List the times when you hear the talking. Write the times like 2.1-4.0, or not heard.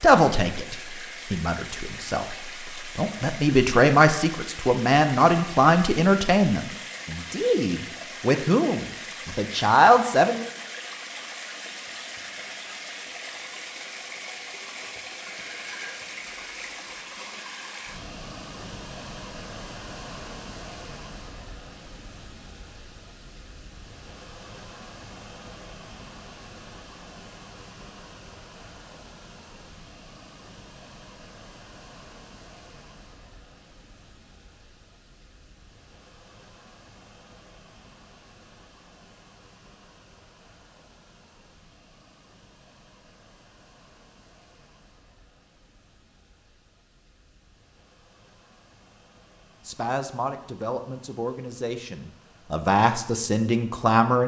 0.0-10.5, 49.6-54.2.